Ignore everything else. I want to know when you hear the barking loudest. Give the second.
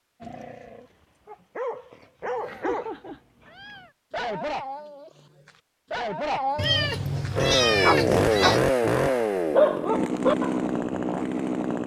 10 s.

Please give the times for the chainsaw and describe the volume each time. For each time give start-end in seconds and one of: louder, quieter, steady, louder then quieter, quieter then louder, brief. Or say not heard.
7.3-11.8 quieter.